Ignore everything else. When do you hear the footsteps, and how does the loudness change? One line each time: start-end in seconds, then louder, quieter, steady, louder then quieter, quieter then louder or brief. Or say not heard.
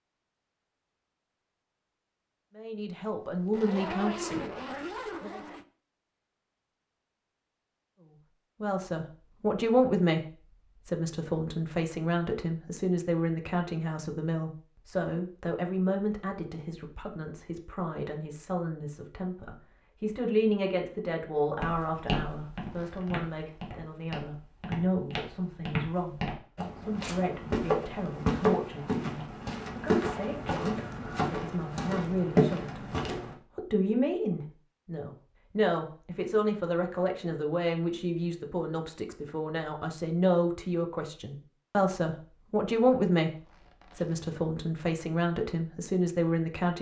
21.6-33.4 louder.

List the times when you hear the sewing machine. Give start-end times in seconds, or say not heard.
not heard.